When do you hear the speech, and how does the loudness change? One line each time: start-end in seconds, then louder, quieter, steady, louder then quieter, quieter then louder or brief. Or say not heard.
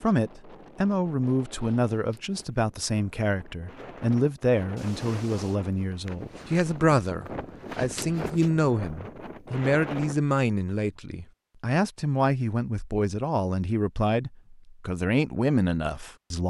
0.0-16.4 steady.